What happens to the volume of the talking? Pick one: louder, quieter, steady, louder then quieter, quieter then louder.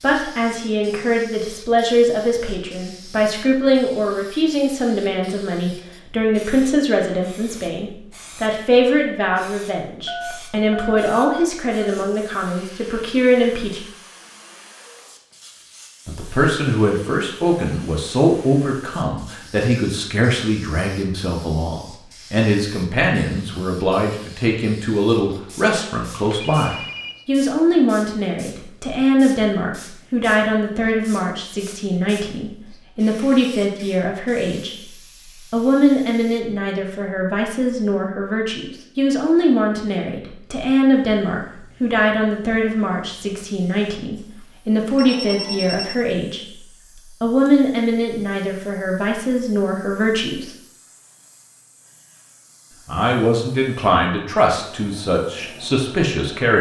steady.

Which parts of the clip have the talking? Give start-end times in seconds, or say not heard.
0.0-13.8, 16.1-50.5, 52.9-56.5.